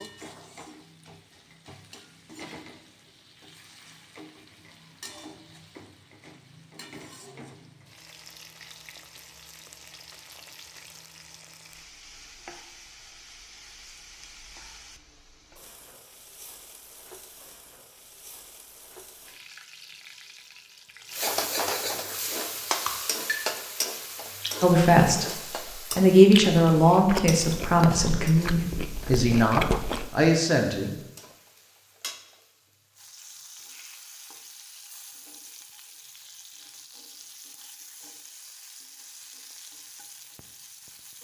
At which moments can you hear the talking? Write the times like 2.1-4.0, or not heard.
24.6-30.9.